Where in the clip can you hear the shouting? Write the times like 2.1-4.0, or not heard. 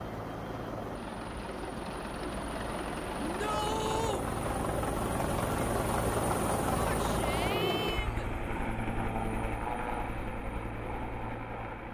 3.2-4.2, 6.8-8.3.